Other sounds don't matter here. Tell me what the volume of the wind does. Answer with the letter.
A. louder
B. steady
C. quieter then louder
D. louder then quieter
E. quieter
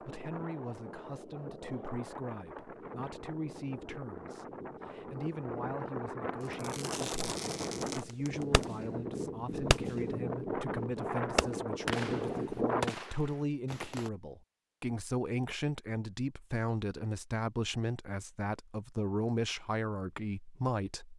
A.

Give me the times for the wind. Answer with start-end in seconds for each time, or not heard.
0.0-12.8.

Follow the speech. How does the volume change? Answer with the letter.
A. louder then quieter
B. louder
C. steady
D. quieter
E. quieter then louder
B.